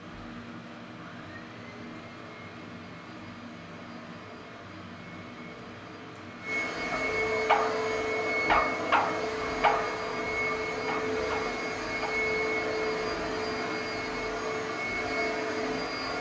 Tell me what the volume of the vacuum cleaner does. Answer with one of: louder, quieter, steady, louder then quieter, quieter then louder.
louder.